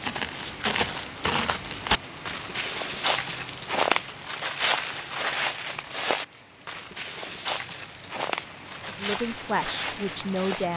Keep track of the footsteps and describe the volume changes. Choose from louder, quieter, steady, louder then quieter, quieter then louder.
quieter.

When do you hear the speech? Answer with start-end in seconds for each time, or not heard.
8.8-10.7.